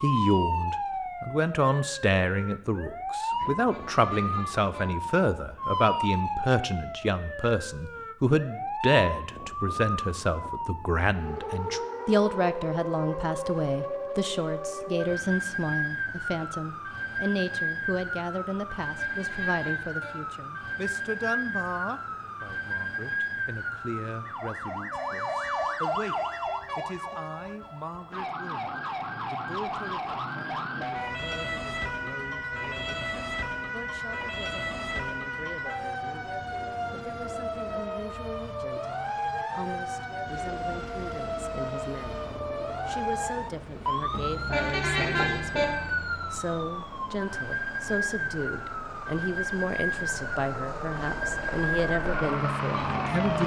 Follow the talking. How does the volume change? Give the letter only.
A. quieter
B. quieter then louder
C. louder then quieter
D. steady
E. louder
B.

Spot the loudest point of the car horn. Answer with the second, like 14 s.
45 s.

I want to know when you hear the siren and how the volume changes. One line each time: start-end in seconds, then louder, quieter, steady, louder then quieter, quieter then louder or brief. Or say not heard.
0.0-53.4 steady.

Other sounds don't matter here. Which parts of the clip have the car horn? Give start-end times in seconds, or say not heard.
3.3-4.8, 18.9-20.1, 44.1-45.6.